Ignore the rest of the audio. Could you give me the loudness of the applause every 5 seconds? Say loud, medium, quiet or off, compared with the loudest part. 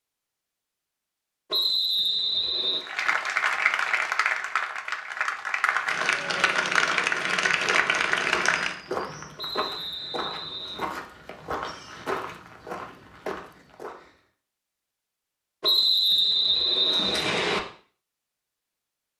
loud, loud, off, off.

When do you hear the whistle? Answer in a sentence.
You can hear the whistle from 1.5 to 2.9 s, from 9.3 to 10.8 s and from 15.6 to 17.6 s.